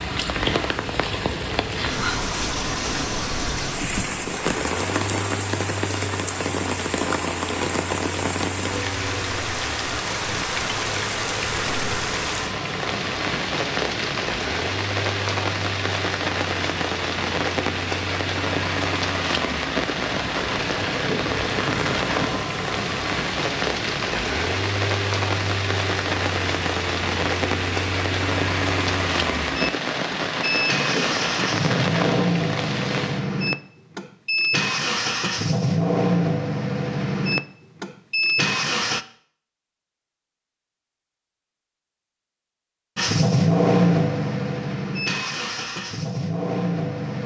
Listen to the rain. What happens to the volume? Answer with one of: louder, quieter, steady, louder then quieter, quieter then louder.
steady.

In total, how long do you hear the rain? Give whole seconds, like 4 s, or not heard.
33 s.